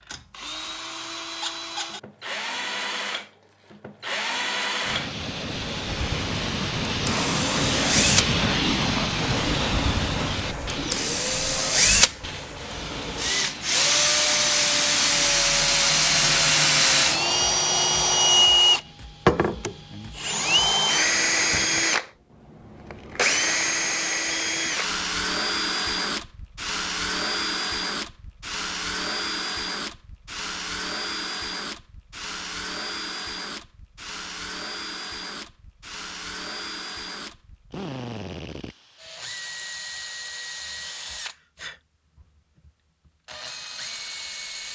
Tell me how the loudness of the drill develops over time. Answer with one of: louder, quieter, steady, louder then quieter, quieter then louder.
louder then quieter.